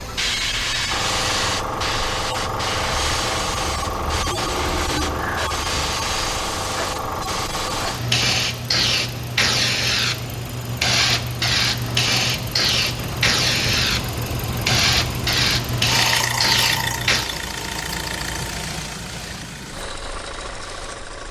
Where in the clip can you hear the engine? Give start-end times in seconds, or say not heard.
0.0-21.2.